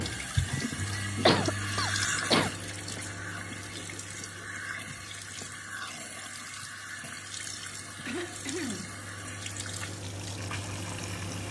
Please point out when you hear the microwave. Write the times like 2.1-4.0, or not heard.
0.0-11.4.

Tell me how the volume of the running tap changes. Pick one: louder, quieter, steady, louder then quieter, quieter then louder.
quieter.